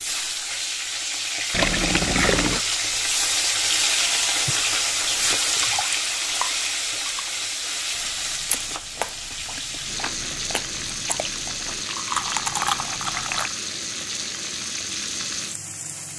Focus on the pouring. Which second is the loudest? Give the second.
2 s.